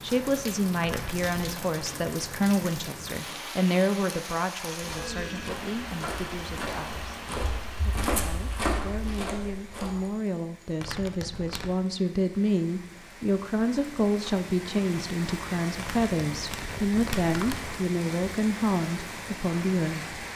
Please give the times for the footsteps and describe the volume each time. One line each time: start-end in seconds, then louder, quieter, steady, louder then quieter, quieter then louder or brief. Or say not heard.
4.7-10.2 louder then quieter.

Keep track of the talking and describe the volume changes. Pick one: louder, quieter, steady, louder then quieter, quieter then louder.
quieter then louder.